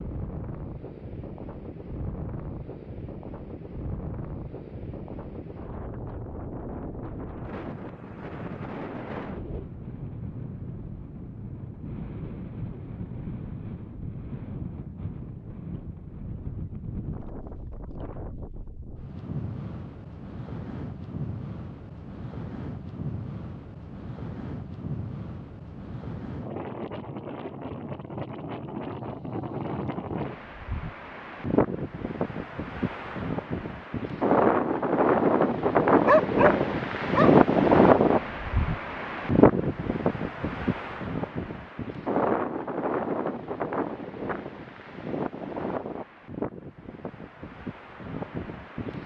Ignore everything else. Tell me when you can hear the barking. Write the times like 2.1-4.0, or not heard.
36.0-37.4.